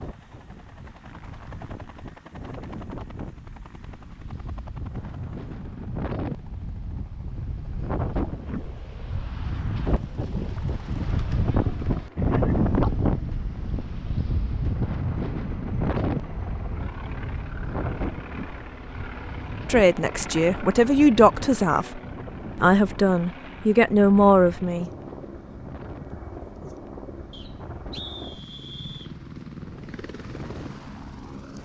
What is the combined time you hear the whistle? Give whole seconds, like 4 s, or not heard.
2 s.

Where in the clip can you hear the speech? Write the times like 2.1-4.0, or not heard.
19.6-24.9.